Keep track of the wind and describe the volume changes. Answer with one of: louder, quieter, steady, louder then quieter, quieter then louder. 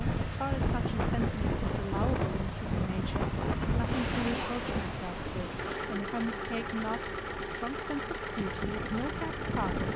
quieter.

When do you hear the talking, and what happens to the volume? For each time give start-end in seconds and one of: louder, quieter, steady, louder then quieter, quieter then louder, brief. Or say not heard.
0.0-9.8 steady.